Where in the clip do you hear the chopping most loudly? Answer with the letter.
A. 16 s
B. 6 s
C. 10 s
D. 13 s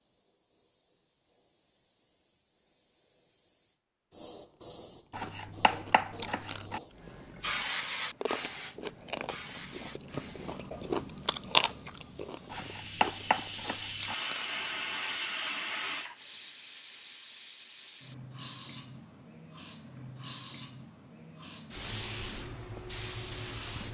D.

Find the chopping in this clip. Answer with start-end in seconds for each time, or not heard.
5.1-6.8, 12.5-14.2.